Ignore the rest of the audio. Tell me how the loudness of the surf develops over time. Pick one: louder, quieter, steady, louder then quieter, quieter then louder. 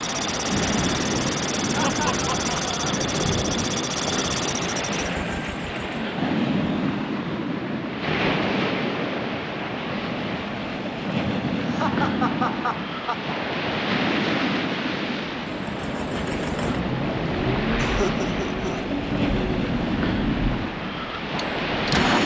steady.